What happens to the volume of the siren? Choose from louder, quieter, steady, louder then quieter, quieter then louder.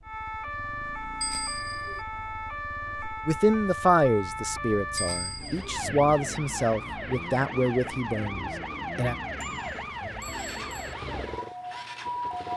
steady.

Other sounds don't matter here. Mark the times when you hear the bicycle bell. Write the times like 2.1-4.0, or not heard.
1.2-2.0, 5.0-5.8, 9.4-10.9.